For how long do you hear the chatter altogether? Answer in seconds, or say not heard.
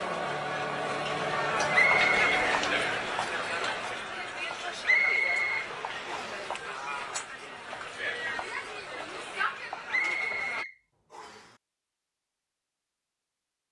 11 s.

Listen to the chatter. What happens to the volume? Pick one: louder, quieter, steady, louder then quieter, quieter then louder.
quieter.